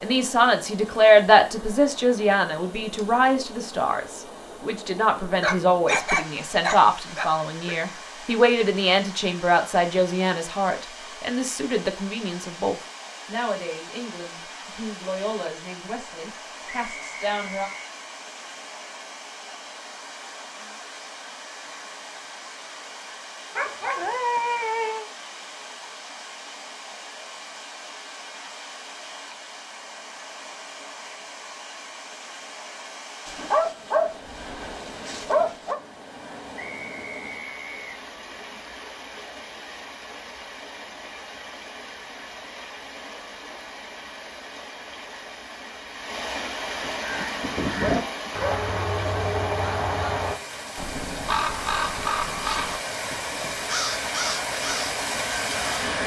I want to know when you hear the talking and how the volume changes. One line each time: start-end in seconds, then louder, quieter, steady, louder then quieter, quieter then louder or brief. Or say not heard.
0.0-17.7 quieter.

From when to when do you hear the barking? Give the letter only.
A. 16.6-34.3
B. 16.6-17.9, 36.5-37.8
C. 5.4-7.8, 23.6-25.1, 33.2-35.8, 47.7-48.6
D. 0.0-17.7
C.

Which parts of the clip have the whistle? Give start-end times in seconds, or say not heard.
16.6-17.9, 36.5-37.8.